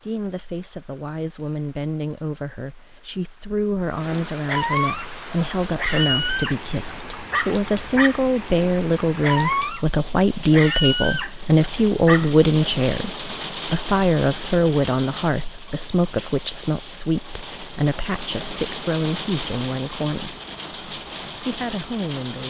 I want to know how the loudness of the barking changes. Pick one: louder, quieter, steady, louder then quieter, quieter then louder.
steady.